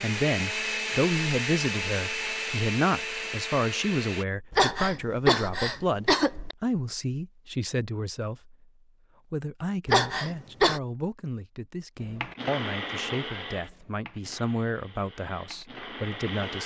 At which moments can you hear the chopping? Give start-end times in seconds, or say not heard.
not heard.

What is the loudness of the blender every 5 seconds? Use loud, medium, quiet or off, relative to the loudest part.
loud, off, medium, medium.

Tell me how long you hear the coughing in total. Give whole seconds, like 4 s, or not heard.
3 s.